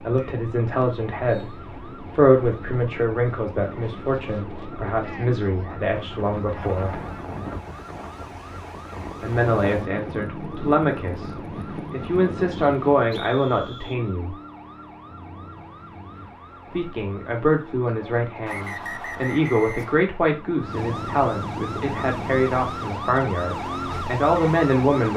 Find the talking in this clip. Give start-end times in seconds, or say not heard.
0.0-7.0, 9.2-14.3, 16.7-25.1.